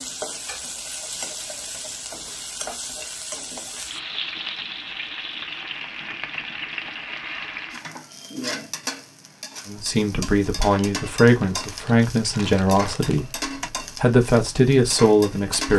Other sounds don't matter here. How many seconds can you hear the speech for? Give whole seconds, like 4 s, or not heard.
6 s.